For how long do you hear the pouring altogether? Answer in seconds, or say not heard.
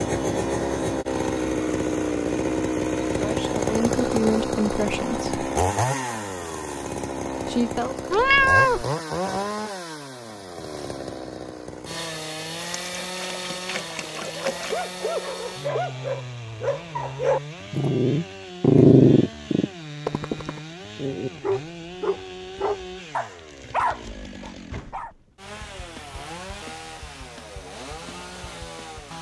2 s.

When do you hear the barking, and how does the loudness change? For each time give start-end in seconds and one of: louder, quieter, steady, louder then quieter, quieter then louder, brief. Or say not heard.
14.3-25.1 louder then quieter.